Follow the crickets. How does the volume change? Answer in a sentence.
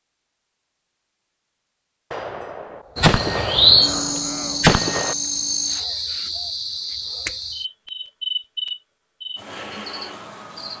The volume of the crickets goes down.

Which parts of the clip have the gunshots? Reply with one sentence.
You can hear the gunshots from 2.1 to 5.2 s.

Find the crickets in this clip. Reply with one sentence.
You can hear the crickets from 3.0 to 10.7 s.